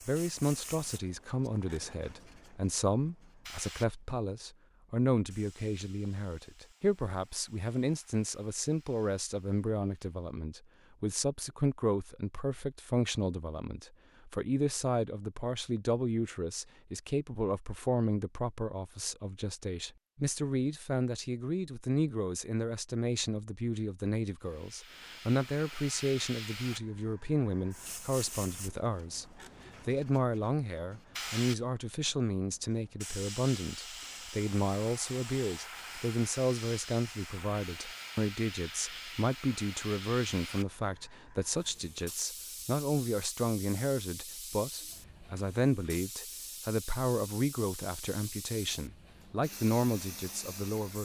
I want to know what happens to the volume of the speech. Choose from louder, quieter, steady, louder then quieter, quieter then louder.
steady.